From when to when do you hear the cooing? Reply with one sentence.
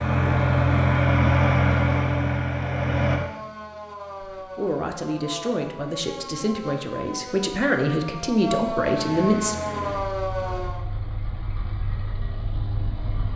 You can't hear the cooing here.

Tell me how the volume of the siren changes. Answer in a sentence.
The volume of the siren goes up.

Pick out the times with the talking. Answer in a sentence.
The talking can be heard from 4.3 to 9.6 s.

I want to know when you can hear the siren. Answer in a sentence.
You can hear the siren from 3.0 to 10.8 s.